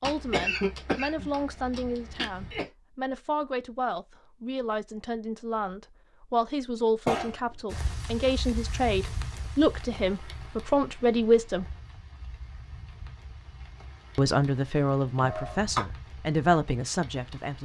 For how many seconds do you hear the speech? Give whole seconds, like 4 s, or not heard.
15 s.